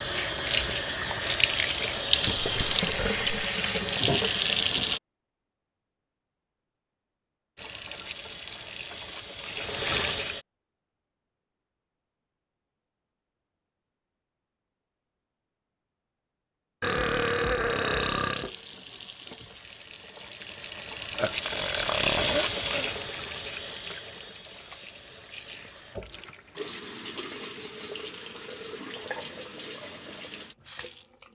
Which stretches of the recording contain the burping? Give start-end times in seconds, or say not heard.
2.2-3.2, 16.8-18.5, 21.1-22.9.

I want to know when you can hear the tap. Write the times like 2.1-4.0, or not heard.
0.0-5.0, 7.5-10.4, 18.1-31.2.